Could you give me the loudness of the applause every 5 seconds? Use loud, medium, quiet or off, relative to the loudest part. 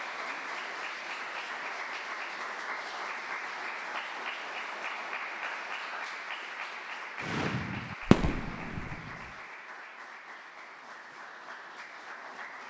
loud, loud, medium.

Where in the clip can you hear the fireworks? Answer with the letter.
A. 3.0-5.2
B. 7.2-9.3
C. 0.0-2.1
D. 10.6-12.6
B.